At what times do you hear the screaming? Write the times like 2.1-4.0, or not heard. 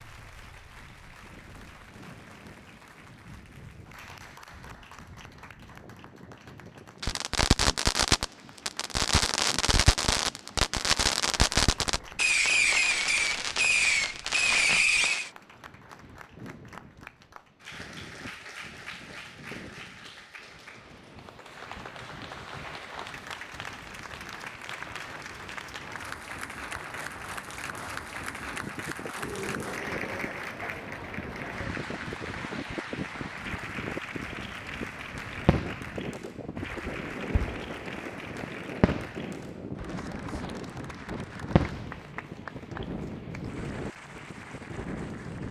29.1-30.5.